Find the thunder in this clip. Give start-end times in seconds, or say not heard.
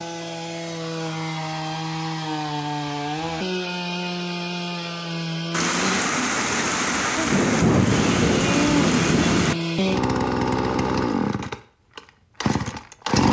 5.5-9.6.